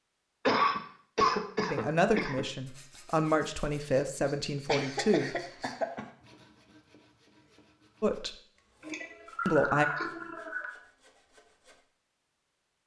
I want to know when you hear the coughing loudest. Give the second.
1 s.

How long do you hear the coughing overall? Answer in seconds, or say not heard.
5 s.